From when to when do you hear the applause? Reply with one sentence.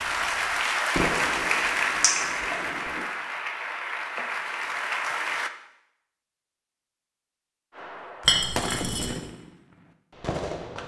The applause can be heard from 0.0 to 5.5 s.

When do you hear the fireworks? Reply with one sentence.
You can hear the fireworks from 0.0 to 3.1 s and from 7.8 to 10.8 s.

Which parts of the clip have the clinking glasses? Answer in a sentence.
You can hear the clinking glasses from 2.0 to 2.5 s and from 8.2 to 9.2 s.